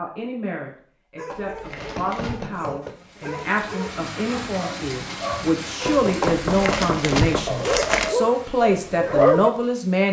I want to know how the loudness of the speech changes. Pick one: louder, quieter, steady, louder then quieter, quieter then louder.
louder.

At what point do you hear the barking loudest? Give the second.
9 s.